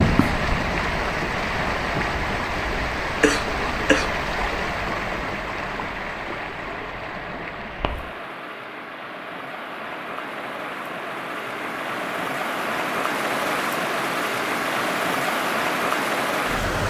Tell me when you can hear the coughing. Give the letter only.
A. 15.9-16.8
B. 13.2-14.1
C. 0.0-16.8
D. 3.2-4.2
D.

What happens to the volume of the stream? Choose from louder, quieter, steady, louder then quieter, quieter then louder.
quieter then louder.